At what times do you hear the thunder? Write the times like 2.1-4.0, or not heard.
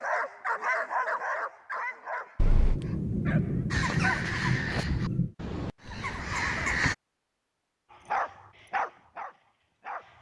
2.4-5.3.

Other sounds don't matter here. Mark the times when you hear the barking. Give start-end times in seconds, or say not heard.
0.0-3.8, 7.9-10.1.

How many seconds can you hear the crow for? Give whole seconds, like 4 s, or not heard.
3 s.